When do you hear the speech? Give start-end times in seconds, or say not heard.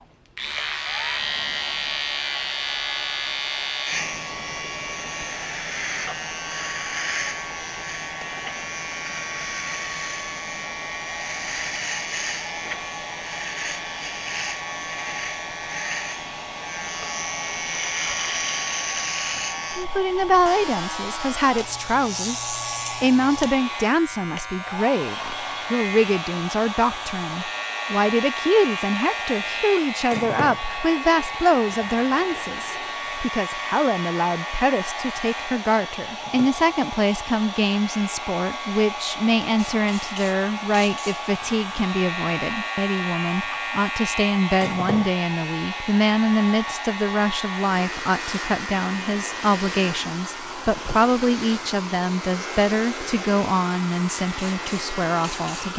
19.8-55.7.